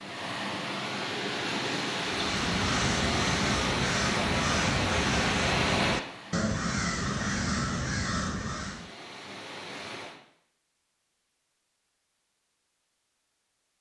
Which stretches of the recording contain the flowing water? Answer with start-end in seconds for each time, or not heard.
0.0-10.2.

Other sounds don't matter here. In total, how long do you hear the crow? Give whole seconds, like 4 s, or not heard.
7 s.